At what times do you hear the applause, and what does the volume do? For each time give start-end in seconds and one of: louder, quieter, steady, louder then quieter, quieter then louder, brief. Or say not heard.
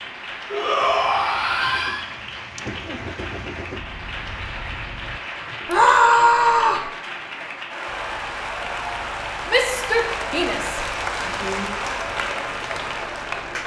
0.0-13.6 louder.